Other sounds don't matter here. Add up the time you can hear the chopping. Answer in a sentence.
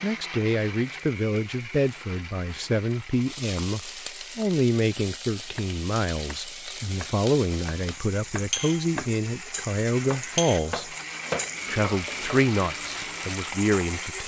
You can hear the chopping for 7 seconds altogether.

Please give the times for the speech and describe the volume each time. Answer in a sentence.
The speech can be heard from 0.0 to 10.9 s, at a steady volume; and briefly from 11.7 to 14.2 s.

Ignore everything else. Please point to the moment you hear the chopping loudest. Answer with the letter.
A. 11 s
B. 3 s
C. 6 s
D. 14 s
A.